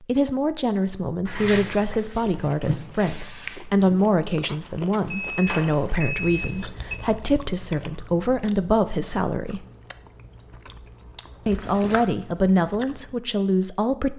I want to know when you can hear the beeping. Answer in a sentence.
The beeping can be heard from 5.0 to 7.0 s.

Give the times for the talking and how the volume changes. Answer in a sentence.
You can hear the talking from 0.0 to 9.7 s, at a steady volume; and briefly from 11.4 to 14.1 s.